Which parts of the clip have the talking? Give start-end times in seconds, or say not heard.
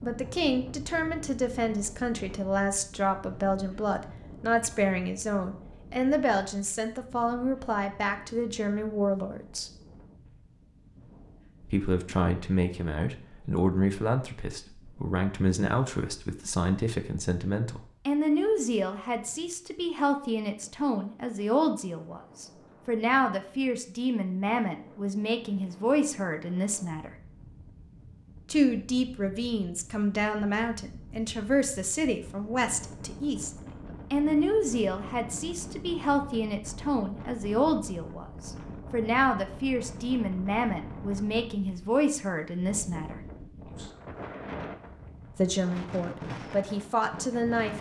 0.0-9.7, 11.6-27.1, 28.5-33.5, 34.1-43.1, 45.4-47.7.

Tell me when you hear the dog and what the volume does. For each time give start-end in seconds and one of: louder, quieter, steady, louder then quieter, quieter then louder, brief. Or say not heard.
not heard.